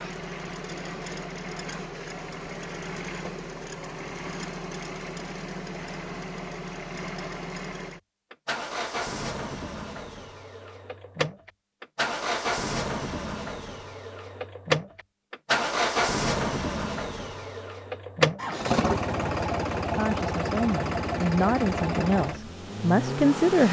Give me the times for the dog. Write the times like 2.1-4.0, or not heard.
not heard.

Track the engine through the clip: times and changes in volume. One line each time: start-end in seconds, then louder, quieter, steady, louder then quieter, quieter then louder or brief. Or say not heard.
0.0-23.6 louder.